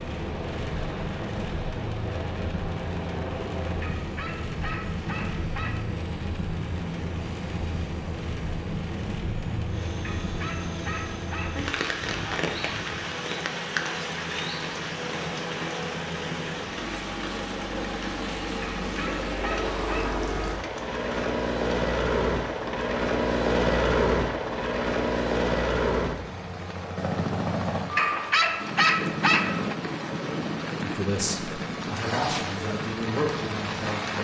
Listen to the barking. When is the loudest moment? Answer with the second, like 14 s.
29 s.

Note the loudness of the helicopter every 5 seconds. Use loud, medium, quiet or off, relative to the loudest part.
quiet, quiet, quiet, medium, loud, loud, medium.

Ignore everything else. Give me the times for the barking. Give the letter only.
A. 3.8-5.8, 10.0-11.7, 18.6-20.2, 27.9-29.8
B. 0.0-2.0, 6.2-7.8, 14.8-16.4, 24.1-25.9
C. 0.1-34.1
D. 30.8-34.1
A.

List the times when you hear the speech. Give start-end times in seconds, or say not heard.
30.8-34.1.